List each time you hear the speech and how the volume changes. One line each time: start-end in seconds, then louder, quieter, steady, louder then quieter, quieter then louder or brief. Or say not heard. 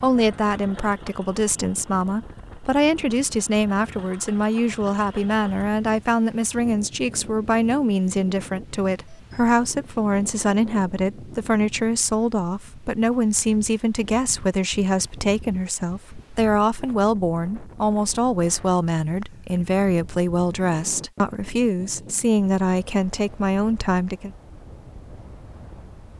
0.0-24.3 steady.